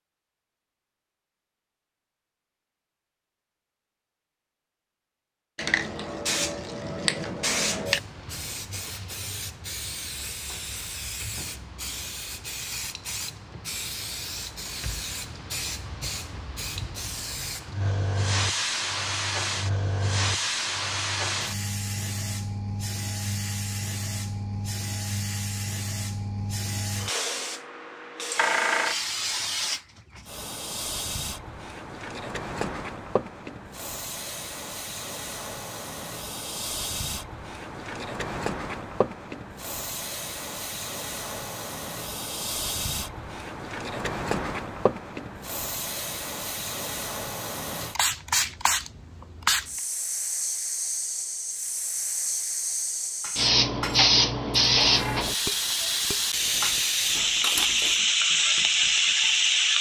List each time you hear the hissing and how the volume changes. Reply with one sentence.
The hissing can be heard from 5.5 to 59.7 s, getting louder.